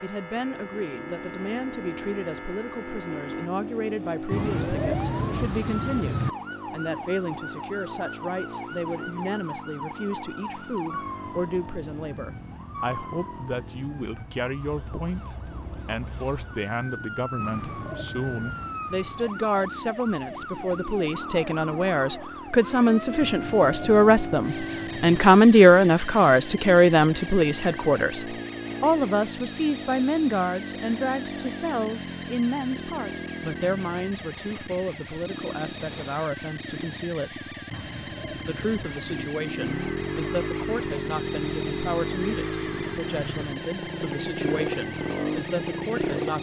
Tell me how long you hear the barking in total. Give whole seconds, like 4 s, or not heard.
not heard.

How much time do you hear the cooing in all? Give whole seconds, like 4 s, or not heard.
7 s.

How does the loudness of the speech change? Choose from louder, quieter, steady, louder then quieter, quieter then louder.
louder then quieter.